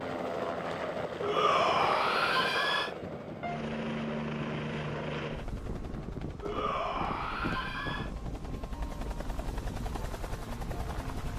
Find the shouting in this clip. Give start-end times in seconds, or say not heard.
1.2-2.9, 6.4-8.1.